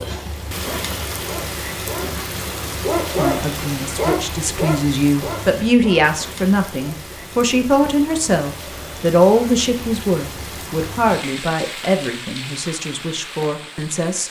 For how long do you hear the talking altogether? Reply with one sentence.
The talking can be heard for 11 seconds in total.